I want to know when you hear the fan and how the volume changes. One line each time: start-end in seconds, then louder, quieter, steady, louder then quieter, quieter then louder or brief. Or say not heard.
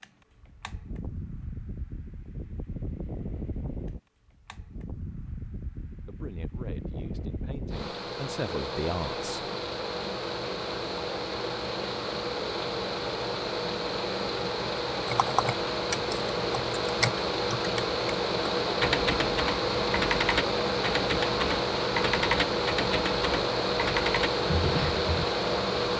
0.0-25.9 louder.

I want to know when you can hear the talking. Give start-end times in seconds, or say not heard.
6.0-9.5.